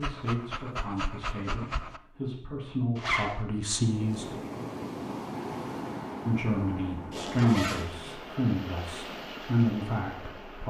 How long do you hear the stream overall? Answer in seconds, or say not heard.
7 s.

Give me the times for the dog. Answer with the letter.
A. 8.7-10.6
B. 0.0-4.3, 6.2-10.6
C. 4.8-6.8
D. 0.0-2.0
D.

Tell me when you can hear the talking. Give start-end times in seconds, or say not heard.
0.0-4.3, 6.2-10.6.